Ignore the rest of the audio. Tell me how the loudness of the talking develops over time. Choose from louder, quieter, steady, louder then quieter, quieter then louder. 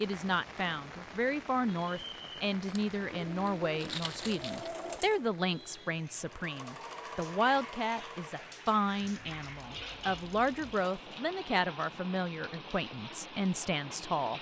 steady.